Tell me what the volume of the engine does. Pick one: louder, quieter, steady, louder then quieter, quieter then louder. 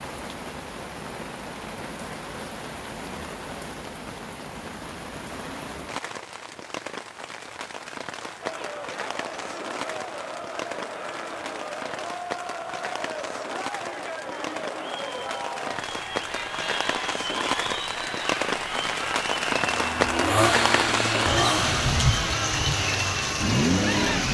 quieter then louder.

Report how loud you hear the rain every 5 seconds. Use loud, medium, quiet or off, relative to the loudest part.
medium, medium, medium, loud, loud.